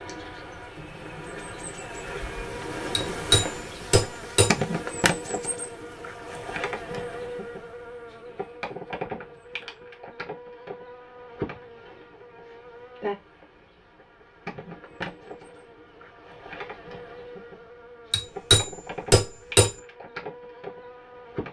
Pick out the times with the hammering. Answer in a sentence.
The hammering can be heard from 3.0 to 4.5 s and from 18.1 to 19.7 s.